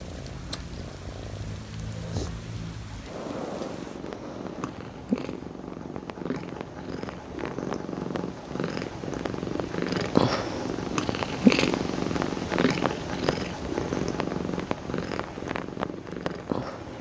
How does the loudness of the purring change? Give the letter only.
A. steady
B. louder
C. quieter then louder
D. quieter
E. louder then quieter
E.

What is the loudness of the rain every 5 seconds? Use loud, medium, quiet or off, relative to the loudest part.
medium, medium, loud, loud.